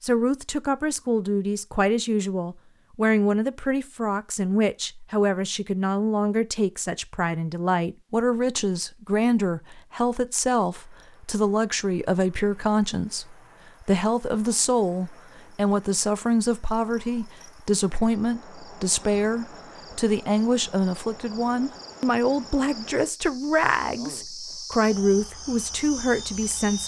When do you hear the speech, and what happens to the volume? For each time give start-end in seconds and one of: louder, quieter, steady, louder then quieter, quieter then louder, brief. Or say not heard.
0.0-26.8 steady.